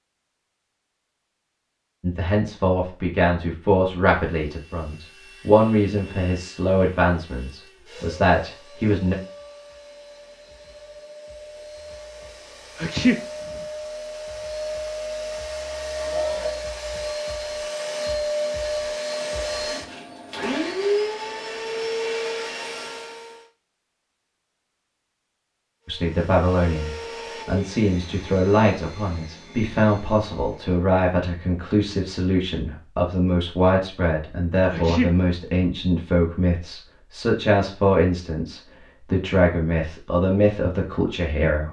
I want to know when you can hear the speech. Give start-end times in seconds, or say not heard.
2.0-9.2, 25.9-41.6.